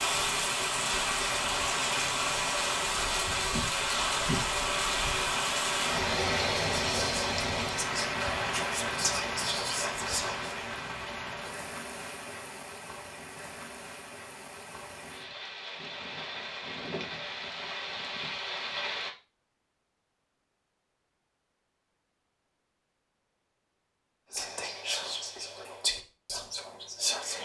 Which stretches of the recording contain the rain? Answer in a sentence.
You can hear the rain from 0.0 to 19.1 s.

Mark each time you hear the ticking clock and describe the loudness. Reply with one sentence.
The ticking clock can't be heard in this clip.